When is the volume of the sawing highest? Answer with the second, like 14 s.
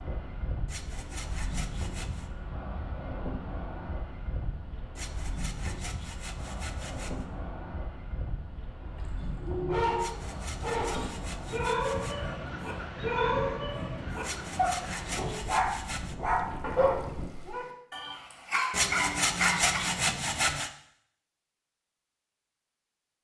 20 s.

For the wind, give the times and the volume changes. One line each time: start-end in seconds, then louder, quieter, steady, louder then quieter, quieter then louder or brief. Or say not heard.
0.0-17.3 steady.